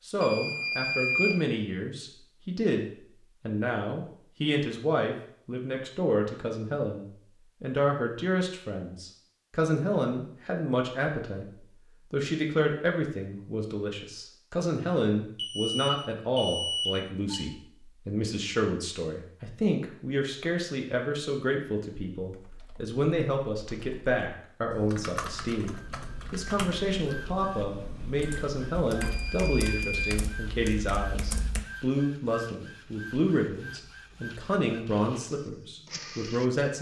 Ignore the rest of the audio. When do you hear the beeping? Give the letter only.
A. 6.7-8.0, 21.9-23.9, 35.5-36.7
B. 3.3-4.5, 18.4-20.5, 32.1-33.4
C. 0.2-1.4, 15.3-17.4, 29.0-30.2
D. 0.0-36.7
C.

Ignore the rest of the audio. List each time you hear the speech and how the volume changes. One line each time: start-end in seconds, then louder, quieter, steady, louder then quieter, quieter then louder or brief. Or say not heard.
0.0-36.7 steady.